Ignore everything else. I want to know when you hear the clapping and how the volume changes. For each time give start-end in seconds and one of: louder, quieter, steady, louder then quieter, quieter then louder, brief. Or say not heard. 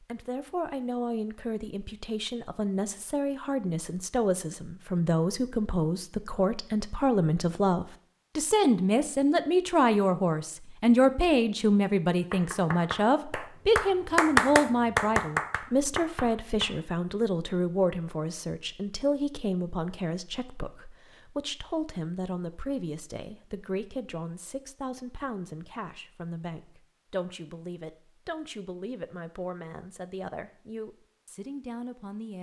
12.3-16.8 louder then quieter.